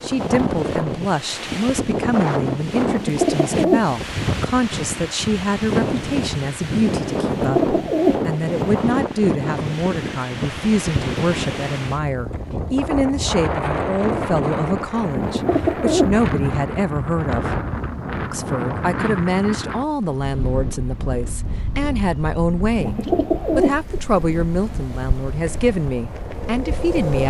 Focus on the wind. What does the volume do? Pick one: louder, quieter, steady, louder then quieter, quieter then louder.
quieter.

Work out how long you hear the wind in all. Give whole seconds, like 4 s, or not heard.
27 s.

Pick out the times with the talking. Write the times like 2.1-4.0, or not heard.
0.0-17.6, 18.3-22.9, 23.6-27.2.